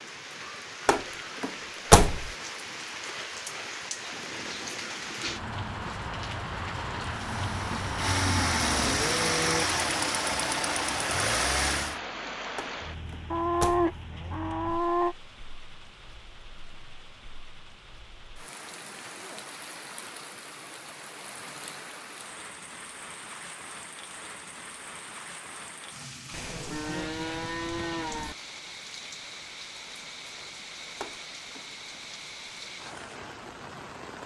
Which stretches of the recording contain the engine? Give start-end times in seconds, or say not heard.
7.1-12.0.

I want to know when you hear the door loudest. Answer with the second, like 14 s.
2 s.